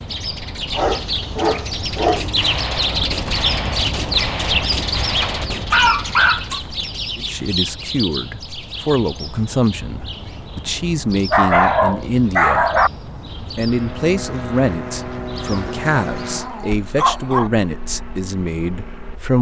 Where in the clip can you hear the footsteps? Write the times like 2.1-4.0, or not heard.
not heard.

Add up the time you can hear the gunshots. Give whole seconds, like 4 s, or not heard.
4 s.